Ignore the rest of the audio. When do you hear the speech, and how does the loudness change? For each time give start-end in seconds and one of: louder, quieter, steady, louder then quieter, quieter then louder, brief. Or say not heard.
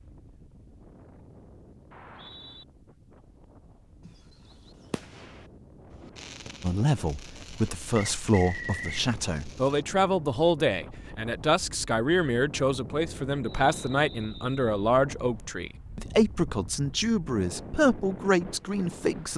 6.6-19.3 steady.